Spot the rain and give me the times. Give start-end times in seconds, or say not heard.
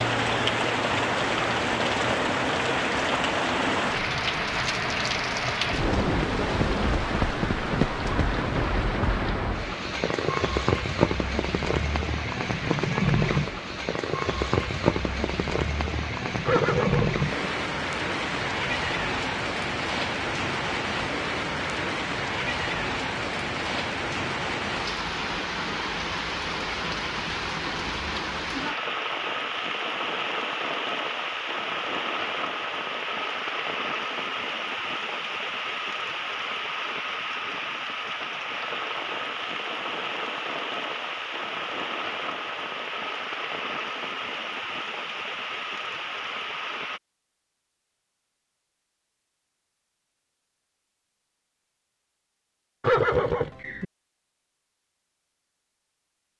0.0-47.0.